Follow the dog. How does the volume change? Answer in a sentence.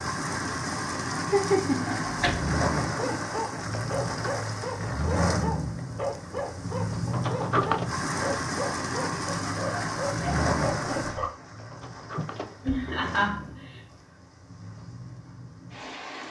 The loudness of the dog stays about the same.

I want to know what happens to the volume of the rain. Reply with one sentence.
The volume of the rain goes down.